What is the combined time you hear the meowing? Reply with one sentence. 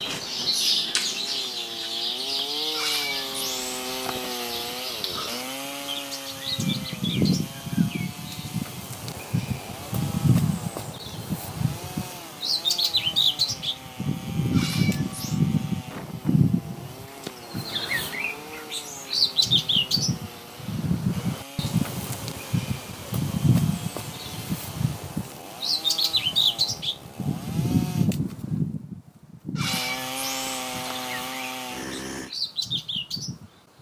The meowing can be heard for 3 seconds in total.